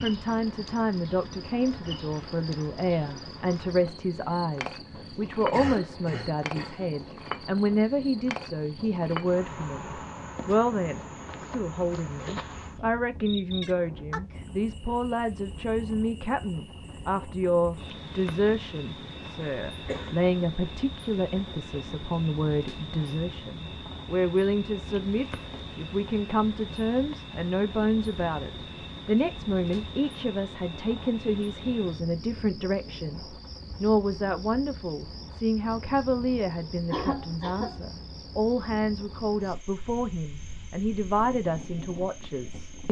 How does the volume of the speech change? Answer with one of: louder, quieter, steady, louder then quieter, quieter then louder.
steady.